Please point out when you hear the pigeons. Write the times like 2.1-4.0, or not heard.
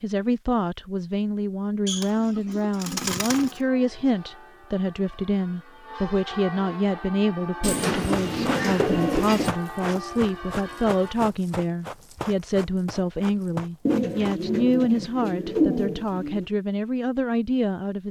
1.9-3.6, 7.6-9.5, 13.8-16.4.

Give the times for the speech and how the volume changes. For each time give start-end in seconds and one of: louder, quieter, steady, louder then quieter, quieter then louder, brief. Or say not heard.
0.0-18.0 steady.